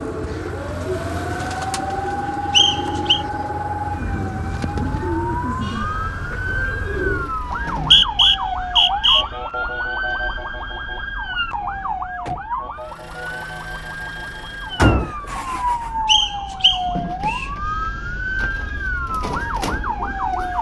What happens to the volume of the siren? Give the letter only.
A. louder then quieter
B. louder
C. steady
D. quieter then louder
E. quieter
C.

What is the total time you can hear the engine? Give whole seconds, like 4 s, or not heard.
11 s.